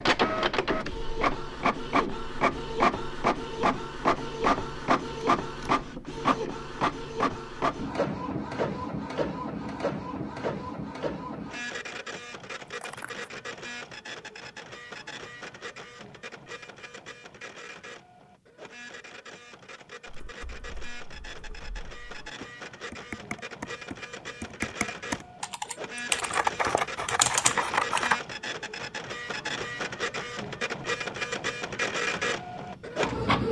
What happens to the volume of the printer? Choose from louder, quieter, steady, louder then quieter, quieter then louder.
quieter then louder.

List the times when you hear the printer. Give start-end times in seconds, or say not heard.
0.0-33.4.